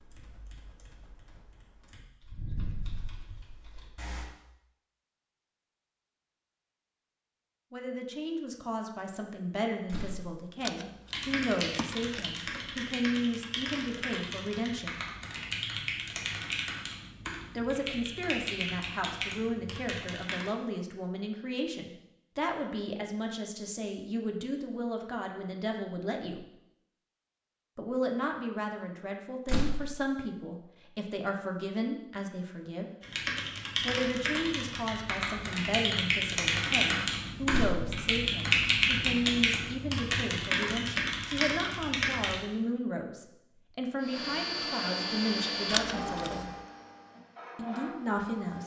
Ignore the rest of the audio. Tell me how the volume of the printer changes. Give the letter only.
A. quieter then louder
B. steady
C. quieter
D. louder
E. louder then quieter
A.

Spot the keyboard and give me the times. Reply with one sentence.
The keyboard can be heard from 0.0 to 4.2 s, from 11.1 to 20.5 s and from 33.0 to 42.4 s.